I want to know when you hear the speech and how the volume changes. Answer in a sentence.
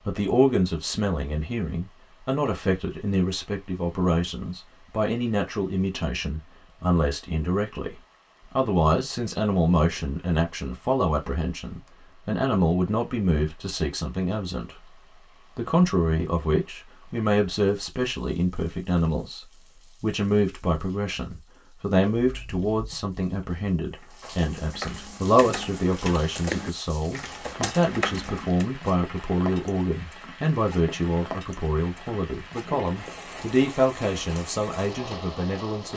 The speech can be heard from 0.1 to 14.9 s, at a steady volume; and from 15.6 to 35.9 s, at a steady volume.